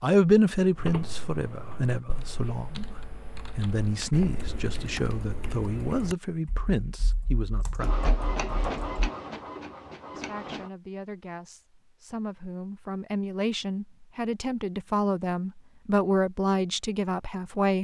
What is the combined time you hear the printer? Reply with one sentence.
You can hear the printer for 3 seconds altogether.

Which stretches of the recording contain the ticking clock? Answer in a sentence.
The ticking clock can't be heard in this clip.